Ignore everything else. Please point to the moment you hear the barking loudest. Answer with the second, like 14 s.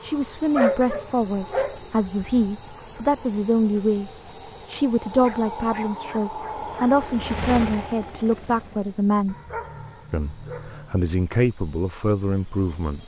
1 s.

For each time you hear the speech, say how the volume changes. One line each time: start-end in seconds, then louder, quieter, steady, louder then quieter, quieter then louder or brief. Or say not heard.
0.0-9.3 steady
10.1-13.0 brief.